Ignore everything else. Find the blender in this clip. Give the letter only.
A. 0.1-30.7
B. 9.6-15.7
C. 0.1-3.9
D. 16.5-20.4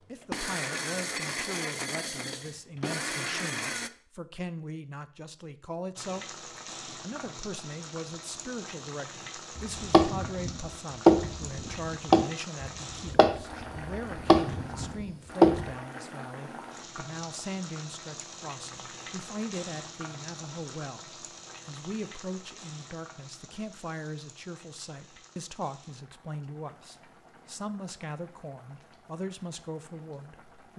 C.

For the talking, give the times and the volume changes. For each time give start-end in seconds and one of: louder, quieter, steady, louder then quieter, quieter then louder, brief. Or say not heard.
0.1-30.7 steady.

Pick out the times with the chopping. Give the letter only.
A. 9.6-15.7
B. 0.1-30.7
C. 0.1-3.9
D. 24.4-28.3
A.